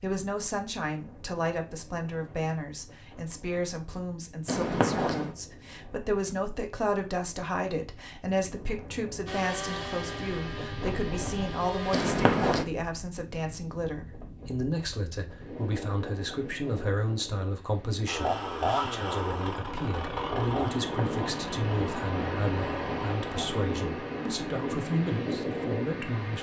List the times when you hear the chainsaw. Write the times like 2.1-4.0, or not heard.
9.2-12.2, 18.1-23.6.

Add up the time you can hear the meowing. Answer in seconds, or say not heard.
4 s.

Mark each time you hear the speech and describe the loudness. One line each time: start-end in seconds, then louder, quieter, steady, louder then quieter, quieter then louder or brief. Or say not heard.
0.0-26.3 steady.